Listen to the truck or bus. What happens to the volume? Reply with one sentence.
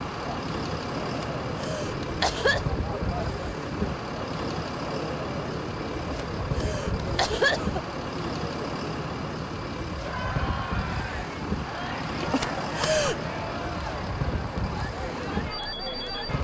The volume of the truck or bus stays about the same.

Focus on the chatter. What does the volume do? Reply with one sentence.
The volume of the chatter stays about the same.